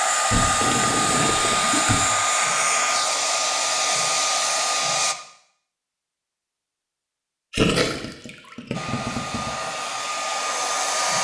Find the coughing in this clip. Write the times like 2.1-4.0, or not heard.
not heard.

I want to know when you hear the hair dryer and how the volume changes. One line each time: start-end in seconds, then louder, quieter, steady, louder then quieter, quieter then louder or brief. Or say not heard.
0.0-5.2 steady
8.7-11.1 brief.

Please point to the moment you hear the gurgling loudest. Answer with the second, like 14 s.
8 s.